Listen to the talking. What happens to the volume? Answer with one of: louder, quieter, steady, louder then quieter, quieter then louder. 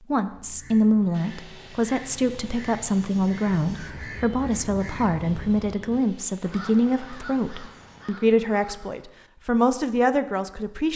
steady.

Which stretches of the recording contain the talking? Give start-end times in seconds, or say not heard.
0.1-10.9.